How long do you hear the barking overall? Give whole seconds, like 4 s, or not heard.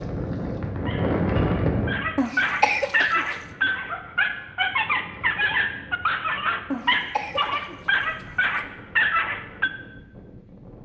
9 s.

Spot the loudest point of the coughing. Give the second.
3 s.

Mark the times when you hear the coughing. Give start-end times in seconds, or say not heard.
2.1-3.4, 6.7-8.6.